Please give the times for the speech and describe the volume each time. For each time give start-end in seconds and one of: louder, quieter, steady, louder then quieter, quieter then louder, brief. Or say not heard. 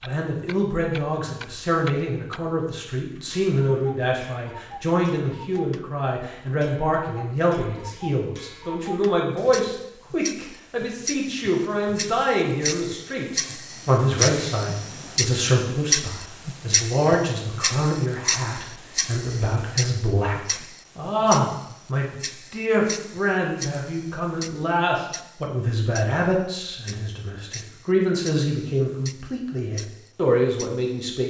0.1-31.2 steady.